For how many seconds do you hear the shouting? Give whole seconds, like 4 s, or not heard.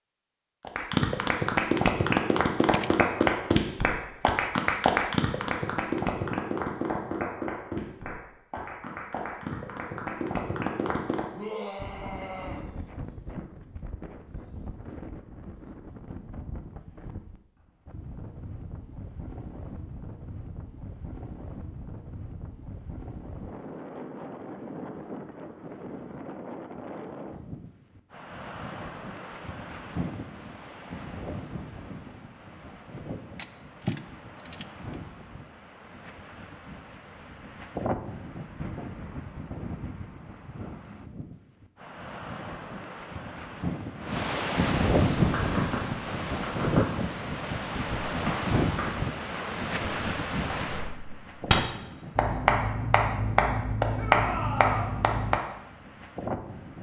2 s.